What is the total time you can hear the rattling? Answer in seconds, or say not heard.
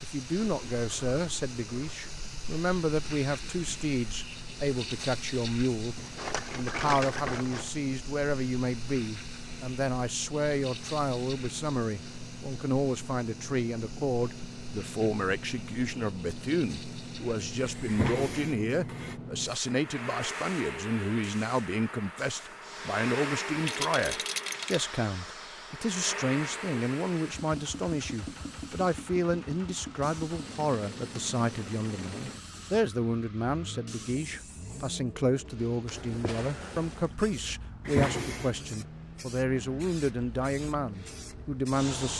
3 s.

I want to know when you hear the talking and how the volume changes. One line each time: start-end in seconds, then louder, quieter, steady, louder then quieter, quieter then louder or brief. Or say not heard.
0.0-42.1 steady.